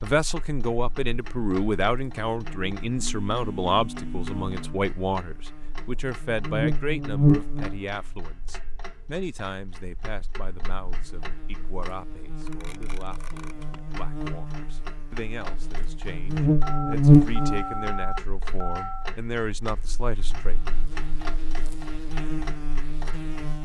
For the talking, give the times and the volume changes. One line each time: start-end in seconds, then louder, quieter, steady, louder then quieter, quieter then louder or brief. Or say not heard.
0.0-20.6 quieter then louder.